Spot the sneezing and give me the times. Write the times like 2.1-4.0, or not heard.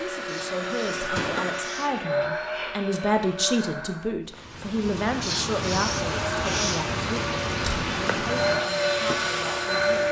0.2-1.9, 5.2-6.8.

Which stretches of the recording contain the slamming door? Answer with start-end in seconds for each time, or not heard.
1.1-1.6, 7.5-7.9.